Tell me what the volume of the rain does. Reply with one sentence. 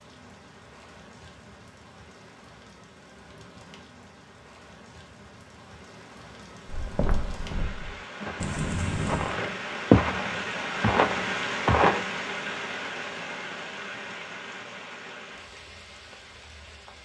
The loudness of the rain goes up, then down.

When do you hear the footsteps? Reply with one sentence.
The footsteps can be heard from 6.7 to 12.1 s.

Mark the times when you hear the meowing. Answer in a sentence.
The meowing can be heard from 8.4 to 9.4 s.